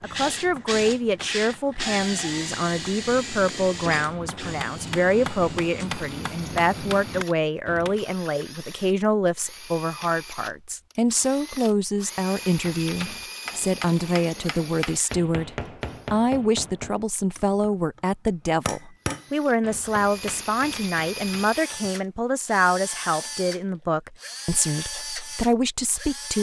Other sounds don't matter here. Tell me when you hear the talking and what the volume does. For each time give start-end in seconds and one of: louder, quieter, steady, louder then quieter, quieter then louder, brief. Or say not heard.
0.0-26.3 steady.